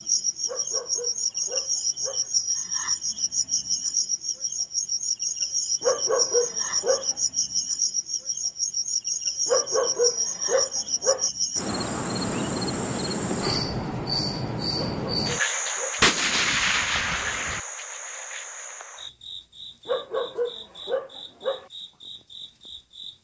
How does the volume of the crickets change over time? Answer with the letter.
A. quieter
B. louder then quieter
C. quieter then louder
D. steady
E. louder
A.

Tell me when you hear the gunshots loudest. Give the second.
16 s.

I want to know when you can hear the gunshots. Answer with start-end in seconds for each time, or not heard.
16.0-17.6.